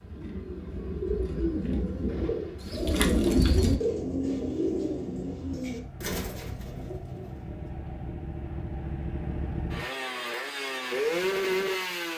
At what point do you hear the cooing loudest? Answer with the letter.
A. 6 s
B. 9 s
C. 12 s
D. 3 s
D.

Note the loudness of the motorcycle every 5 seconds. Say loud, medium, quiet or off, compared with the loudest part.
quiet, medium, loud.